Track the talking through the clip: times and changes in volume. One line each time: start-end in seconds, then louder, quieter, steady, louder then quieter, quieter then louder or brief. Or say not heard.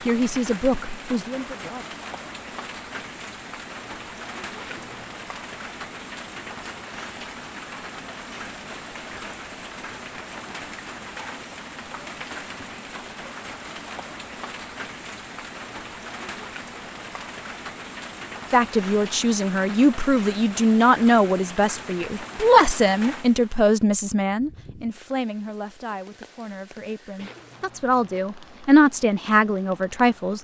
0.1-1.9 brief
18.5-30.3 quieter then louder.